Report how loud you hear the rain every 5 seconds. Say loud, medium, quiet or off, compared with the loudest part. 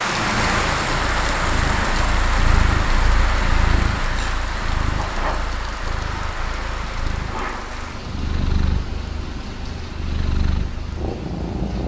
loud, medium, quiet.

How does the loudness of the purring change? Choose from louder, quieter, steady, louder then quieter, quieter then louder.
quieter then louder.